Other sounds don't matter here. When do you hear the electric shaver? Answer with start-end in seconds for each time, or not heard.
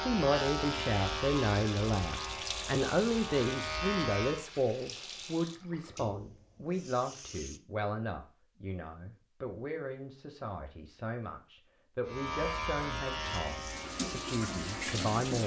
0.0-4.5, 12.1-15.4.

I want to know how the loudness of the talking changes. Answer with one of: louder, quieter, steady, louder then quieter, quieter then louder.
quieter.